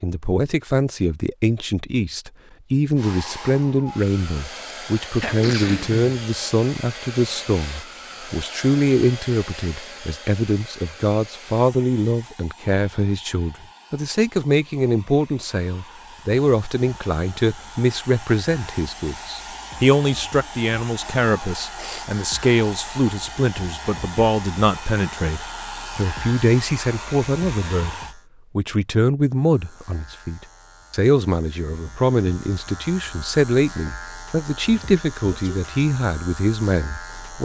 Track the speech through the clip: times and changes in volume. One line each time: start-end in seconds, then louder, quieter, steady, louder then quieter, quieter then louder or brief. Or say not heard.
0.0-27.9 steady
28.6-37.4 steady.